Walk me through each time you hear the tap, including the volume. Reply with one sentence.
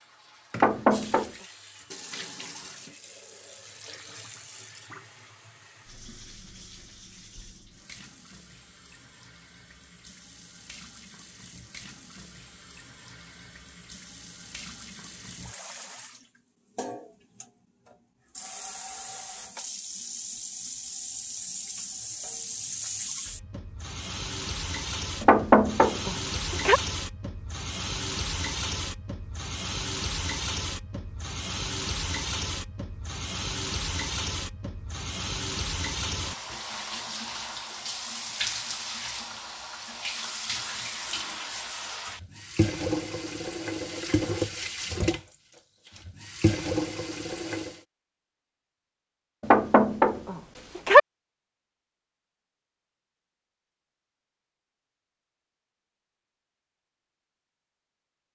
The tap can be heard from 0.0 to 47.9 s, getting louder.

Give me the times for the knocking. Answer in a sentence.
You can hear the knocking from 0.6 to 1.3 s, from 25.2 to 26.8 s and from 49.4 to 51.0 s.